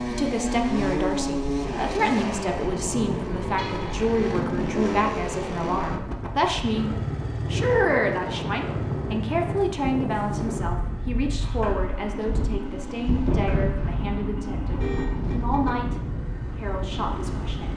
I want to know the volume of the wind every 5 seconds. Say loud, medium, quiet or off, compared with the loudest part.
medium, loud, loud, loud.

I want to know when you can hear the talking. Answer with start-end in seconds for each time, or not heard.
0.1-6.9, 7.5-17.7.